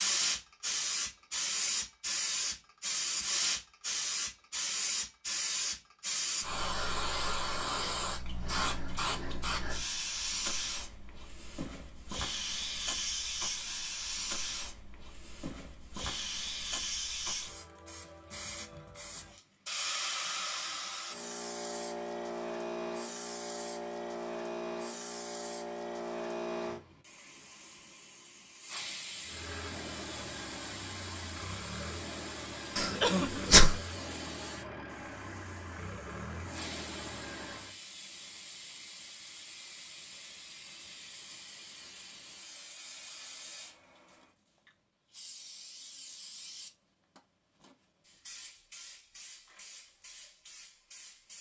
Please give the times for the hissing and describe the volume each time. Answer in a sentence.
You can hear the hissing from 0.0 to 51.3 s, getting quieter.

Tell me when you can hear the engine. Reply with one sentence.
The engine can be heard from 29.2 to 37.8 s.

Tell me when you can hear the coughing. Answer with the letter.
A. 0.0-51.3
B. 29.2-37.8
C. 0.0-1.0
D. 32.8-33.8
D.